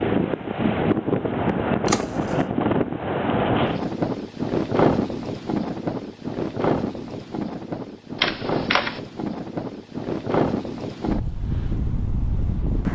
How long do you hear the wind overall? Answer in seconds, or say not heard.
13 s.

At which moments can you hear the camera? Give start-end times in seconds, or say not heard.
1.9-2.4, 8.2-9.0.